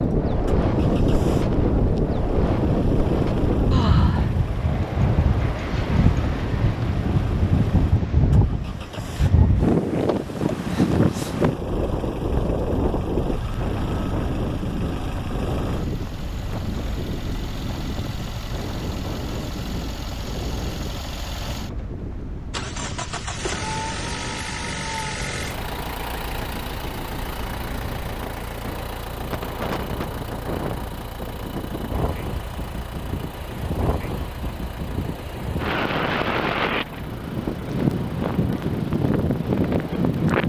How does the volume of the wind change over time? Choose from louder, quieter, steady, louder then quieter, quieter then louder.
quieter then louder.